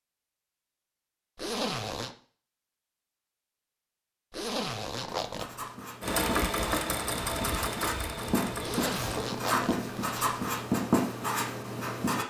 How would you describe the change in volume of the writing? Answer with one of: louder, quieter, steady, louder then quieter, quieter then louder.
louder.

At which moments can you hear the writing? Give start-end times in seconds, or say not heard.
5.0-12.2.